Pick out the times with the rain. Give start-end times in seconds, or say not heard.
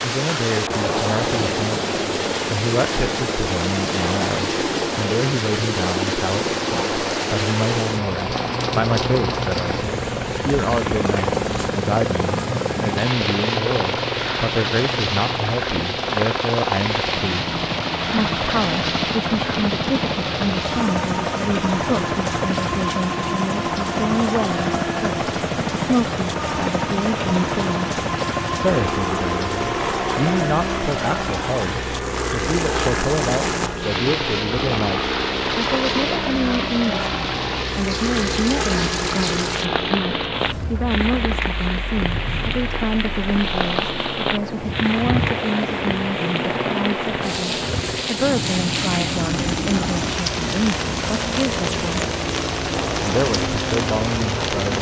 0.0-54.7.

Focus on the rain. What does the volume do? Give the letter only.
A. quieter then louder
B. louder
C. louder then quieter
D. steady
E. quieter
D.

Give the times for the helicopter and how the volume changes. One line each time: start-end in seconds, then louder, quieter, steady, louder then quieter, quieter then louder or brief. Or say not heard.
0.0-54.7 steady.